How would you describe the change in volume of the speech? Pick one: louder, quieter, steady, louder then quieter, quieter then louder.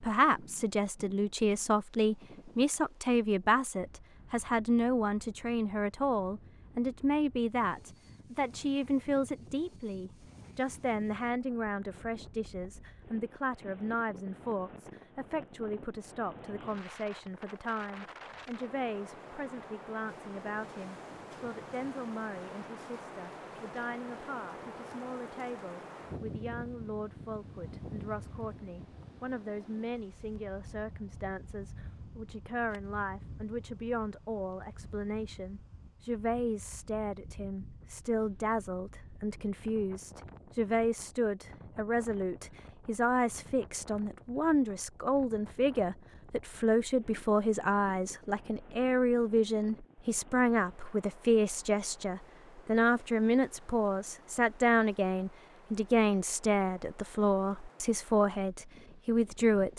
quieter then louder.